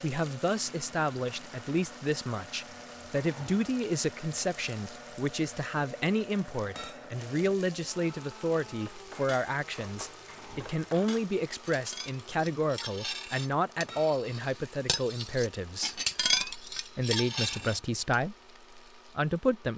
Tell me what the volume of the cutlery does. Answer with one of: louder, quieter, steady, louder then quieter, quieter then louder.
louder.